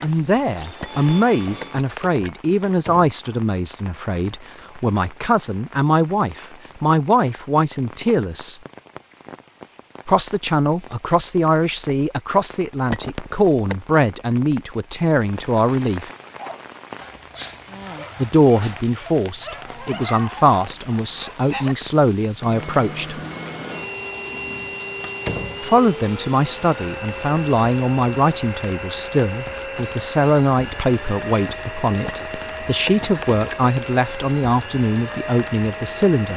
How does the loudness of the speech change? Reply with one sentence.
The volume of the speech stays about the same.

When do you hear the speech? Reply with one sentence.
You can hear the speech from 0.0 to 8.6 s, from 10.1 to 16.1 s, from 18.1 to 23.2 s and from 25.6 to 36.3 s.